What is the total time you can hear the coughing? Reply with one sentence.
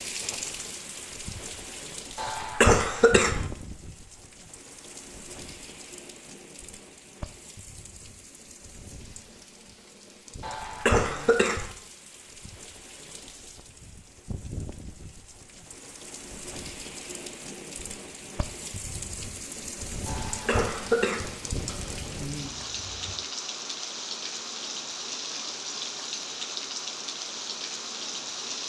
The coughing can be heard for 4 seconds in total.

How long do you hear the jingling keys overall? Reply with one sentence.
The jingling keys can be heard for 2 seconds in total.